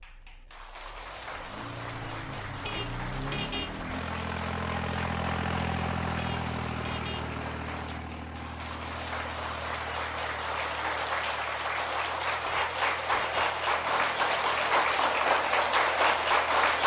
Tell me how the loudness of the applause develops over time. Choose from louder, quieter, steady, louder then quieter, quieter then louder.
louder.